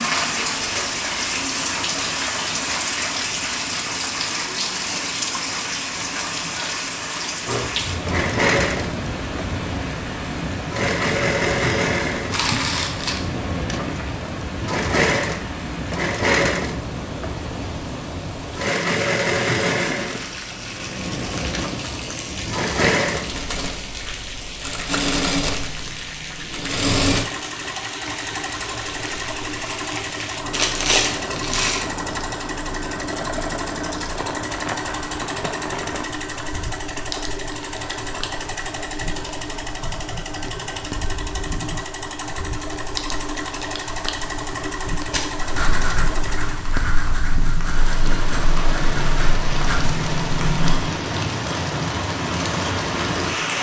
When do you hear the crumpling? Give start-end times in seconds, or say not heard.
12.3-13.2, 30.5-31.9.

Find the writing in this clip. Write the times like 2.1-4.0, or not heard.
45.1-50.8.